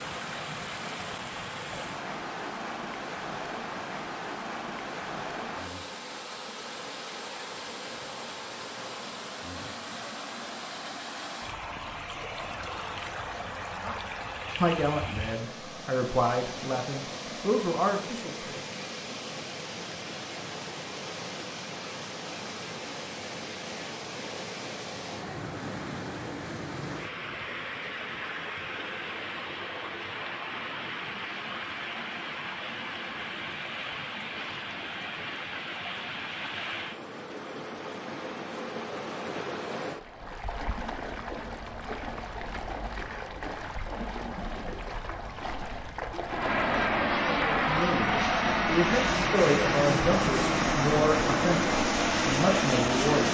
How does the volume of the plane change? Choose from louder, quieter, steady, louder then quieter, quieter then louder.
steady.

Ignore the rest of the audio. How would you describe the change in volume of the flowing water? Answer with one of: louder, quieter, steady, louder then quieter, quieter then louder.
steady.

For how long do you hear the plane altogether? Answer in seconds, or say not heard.
7 s.